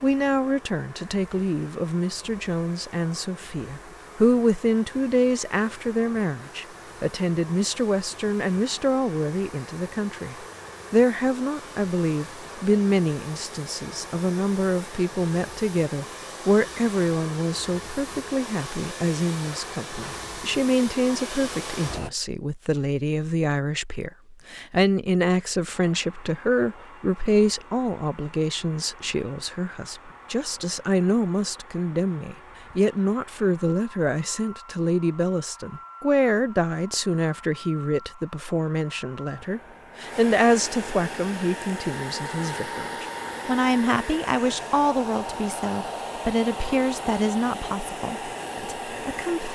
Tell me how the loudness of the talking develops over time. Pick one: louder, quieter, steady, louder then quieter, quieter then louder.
steady.